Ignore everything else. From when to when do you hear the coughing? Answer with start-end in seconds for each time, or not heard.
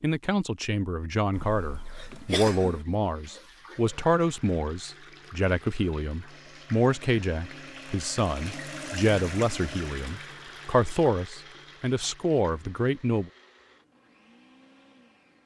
1.4-2.9.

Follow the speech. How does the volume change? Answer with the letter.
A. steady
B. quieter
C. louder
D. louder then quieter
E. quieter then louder
A.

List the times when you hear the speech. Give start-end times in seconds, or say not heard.
0.0-13.3.